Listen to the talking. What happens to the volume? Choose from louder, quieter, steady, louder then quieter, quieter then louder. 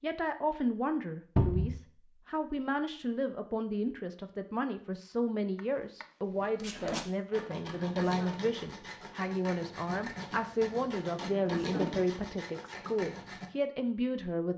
steady.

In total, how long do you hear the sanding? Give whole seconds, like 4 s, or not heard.
7 s.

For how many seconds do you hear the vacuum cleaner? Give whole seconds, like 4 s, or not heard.
not heard.